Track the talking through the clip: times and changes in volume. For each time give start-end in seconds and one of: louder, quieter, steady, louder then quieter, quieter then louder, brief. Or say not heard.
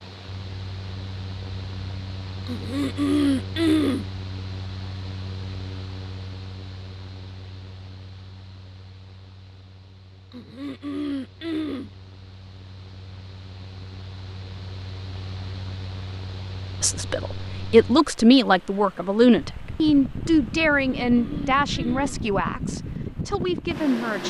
16.8-24.2 quieter.